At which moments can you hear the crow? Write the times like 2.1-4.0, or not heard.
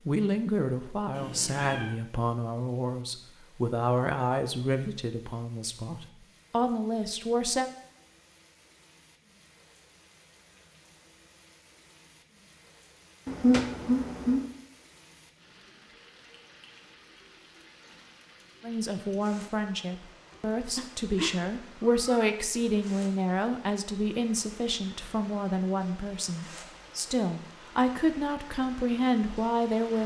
not heard.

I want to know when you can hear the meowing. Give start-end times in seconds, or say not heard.
1.1-1.9, 13.2-14.5, 20.3-22.3.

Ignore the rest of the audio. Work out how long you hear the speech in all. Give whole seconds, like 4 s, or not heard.
19 s.